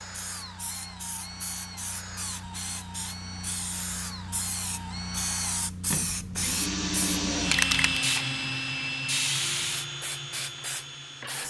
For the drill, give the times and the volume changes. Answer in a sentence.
You can hear the drill from 0.0 to 11.4 s, getting louder then quieter.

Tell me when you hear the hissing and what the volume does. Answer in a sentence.
The hissing can be heard from 0.0 to 11.4 s, getting louder.